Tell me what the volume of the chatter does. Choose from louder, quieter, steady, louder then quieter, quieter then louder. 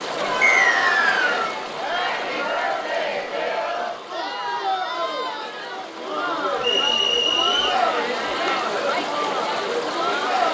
steady.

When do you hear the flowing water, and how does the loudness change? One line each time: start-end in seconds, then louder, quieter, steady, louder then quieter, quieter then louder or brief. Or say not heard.
0.0-10.5 quieter then louder.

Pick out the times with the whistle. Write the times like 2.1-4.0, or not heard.
0.4-1.6, 6.6-7.8.